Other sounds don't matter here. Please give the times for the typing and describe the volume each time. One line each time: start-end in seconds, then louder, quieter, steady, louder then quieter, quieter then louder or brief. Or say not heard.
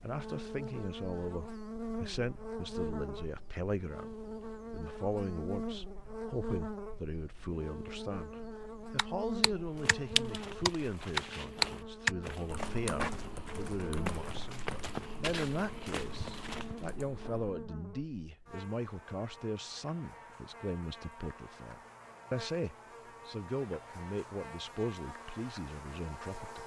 8.9-17.5 louder then quieter.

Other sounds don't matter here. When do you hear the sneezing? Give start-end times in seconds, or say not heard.
not heard.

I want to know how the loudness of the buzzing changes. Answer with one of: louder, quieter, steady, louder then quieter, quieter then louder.
quieter.